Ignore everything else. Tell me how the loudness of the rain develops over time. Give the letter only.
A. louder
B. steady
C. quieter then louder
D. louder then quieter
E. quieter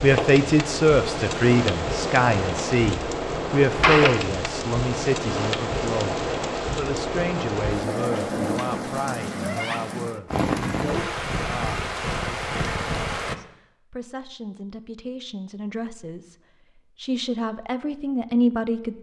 B.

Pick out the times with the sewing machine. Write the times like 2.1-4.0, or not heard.
not heard.